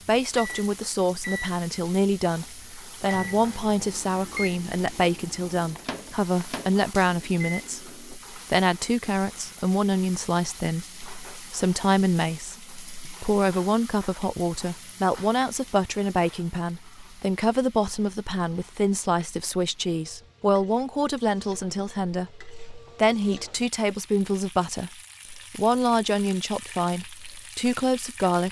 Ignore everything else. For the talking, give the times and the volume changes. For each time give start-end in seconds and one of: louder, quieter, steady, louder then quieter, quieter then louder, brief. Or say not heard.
0.1-28.4 steady.